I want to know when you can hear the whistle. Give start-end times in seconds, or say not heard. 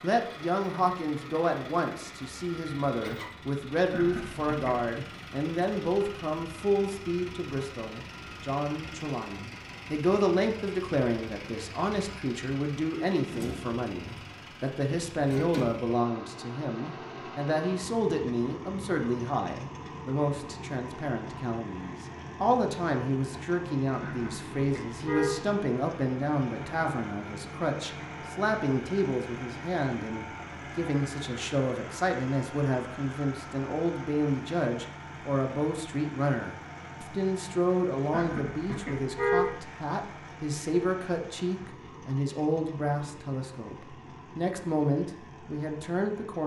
not heard.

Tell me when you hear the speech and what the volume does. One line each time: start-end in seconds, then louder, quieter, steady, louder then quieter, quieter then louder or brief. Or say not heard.
0.0-46.4 steady.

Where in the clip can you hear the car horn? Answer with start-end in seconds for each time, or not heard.
3.9-4.9, 24.0-25.4, 38.1-39.5.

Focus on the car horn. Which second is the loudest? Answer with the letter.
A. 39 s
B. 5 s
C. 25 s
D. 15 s
A.